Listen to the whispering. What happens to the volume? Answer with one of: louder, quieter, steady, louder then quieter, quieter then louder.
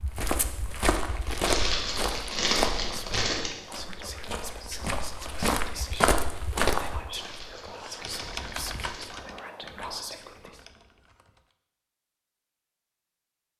steady.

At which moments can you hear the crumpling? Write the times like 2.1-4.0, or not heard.
1.4-3.5, 7.2-9.2.